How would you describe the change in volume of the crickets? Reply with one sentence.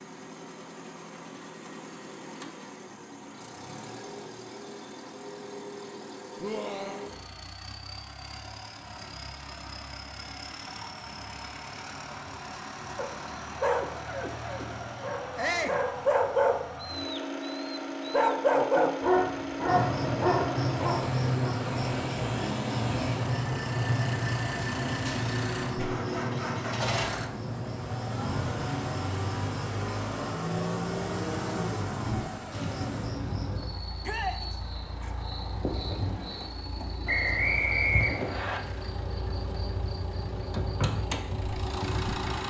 The volume of the crickets goes down.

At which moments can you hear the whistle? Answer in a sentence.
You can hear the whistle from 37.0 to 38.6 s.